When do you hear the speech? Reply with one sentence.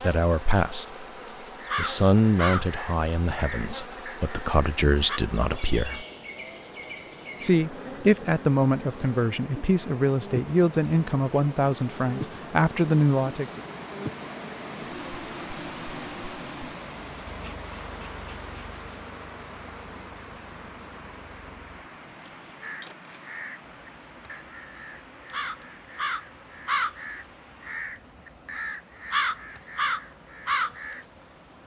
The speech can be heard from 0.0 to 1.1 s, from 1.8 to 6.0 s and from 7.4 to 13.6 s.